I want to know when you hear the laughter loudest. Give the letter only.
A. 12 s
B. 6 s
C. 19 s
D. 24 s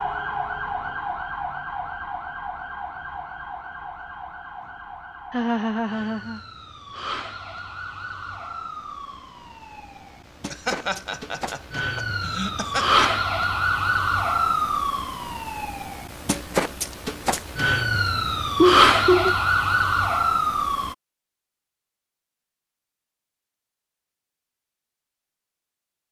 C.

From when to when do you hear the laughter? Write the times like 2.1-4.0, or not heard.
5.3-6.4, 10.5-13.1, 18.6-19.4.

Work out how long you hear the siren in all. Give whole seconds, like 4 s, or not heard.
21 s.